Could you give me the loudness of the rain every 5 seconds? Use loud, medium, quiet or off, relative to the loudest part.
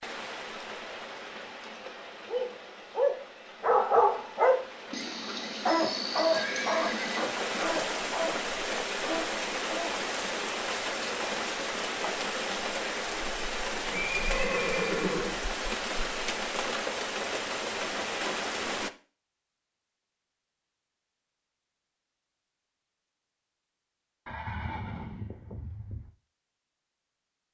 medium, loud, loud, loud, off, off.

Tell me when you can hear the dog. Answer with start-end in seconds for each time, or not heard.
2.2-9.9.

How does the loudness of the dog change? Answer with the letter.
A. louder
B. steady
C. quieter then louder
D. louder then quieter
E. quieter
E.